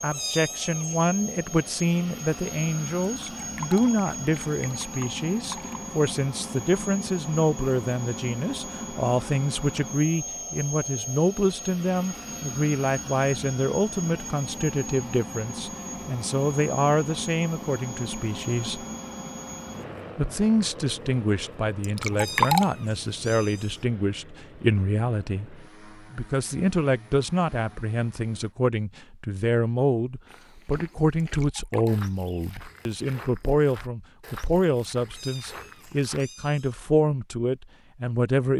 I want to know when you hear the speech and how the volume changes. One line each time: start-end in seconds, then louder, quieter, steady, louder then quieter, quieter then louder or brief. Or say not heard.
0.0-18.9 steady
20.1-38.5 steady.